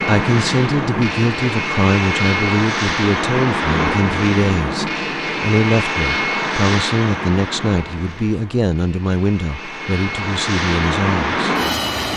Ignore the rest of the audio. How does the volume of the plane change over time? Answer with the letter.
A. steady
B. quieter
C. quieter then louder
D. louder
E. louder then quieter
C.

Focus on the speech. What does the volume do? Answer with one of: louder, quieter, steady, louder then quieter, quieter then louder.
steady.